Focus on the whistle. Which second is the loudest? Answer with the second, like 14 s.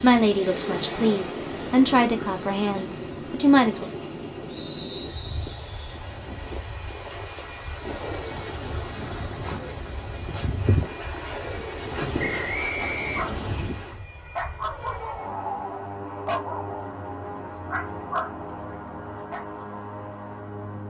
13 s.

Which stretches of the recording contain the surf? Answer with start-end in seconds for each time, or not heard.
0.0-14.0.